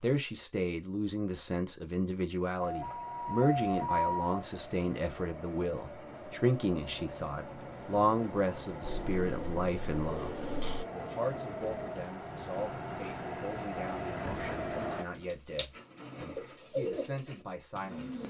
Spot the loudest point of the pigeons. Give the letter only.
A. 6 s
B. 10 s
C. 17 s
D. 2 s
C.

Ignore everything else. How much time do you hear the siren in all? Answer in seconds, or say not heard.
2 s.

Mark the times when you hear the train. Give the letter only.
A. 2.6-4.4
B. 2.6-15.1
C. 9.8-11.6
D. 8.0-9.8
B.